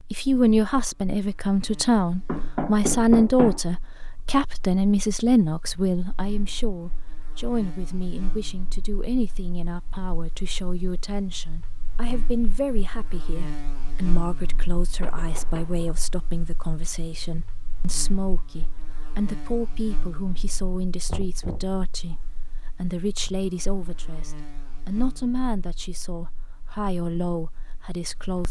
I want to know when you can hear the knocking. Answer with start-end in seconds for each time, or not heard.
2.2-3.6, 15.0-16.0, 21.1-21.6.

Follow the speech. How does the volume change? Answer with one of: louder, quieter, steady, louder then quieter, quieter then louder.
quieter.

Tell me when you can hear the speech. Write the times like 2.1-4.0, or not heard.
0.1-28.4.